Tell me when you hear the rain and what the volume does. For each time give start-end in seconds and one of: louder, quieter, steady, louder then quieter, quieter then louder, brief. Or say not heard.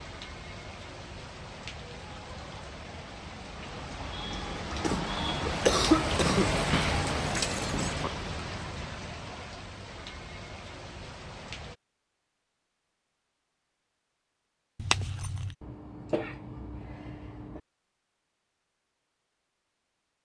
0.0-11.8 louder then quieter.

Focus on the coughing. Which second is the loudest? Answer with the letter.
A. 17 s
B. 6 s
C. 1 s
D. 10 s
B.